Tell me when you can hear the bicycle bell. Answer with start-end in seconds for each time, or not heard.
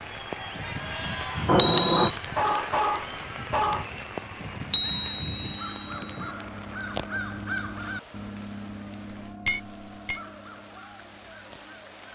1.4-2.1, 4.7-6.2, 9.2-10.2.